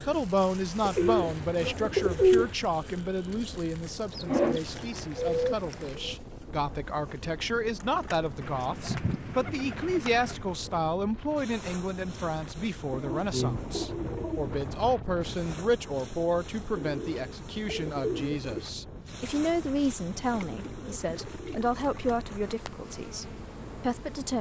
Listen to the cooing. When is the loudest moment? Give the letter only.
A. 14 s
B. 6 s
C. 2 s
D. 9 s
C.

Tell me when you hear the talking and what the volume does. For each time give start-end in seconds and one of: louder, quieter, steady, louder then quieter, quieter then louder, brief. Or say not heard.
0.0-24.3 steady.